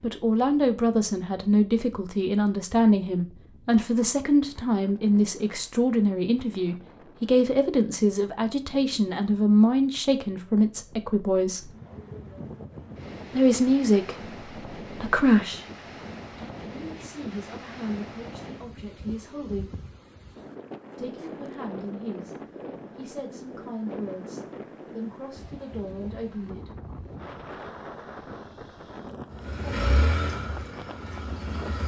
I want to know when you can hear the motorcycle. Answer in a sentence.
You can hear the motorcycle from 29.3 to 31.8 s.